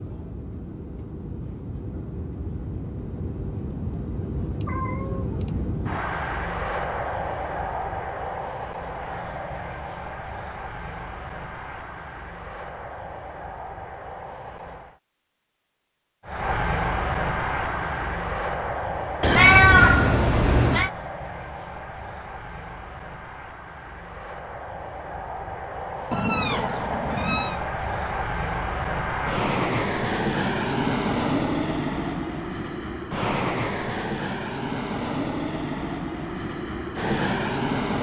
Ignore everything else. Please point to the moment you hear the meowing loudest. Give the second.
20 s.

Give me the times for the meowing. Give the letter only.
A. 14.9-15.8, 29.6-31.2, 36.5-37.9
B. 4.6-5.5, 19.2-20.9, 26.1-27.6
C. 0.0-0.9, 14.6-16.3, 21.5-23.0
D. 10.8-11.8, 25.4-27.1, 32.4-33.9
B.